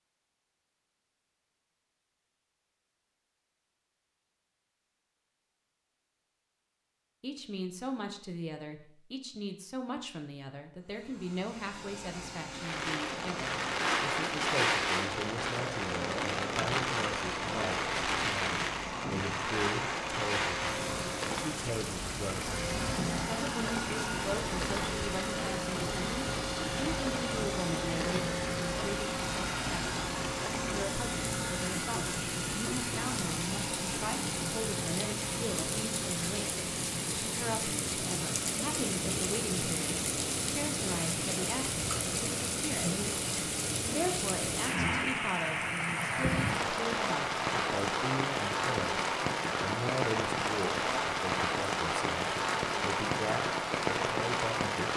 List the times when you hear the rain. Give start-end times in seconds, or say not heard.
12.5-54.9.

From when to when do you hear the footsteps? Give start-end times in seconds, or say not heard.
not heard.